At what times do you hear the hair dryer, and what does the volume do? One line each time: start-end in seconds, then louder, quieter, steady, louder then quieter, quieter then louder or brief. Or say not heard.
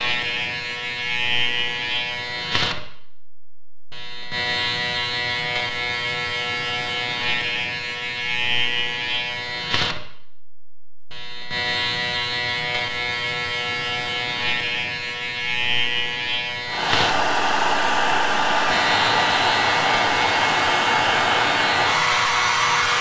16.6-22.9 steady.